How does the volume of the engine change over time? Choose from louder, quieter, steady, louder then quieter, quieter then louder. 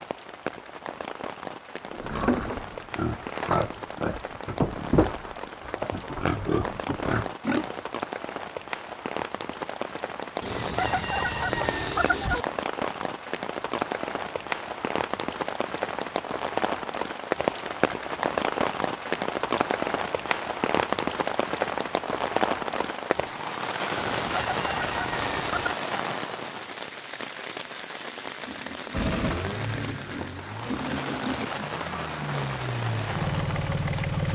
quieter then louder.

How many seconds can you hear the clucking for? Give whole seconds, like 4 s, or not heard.
4 s.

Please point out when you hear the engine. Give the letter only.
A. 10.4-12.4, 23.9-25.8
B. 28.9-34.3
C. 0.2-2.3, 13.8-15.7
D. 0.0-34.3
B.